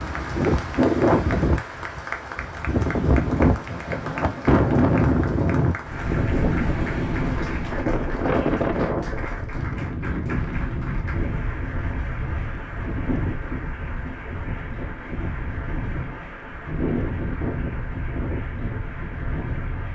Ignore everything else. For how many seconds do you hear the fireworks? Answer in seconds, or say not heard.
not heard.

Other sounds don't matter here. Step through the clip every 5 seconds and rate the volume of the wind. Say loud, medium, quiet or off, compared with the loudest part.
loud, loud, medium, medium.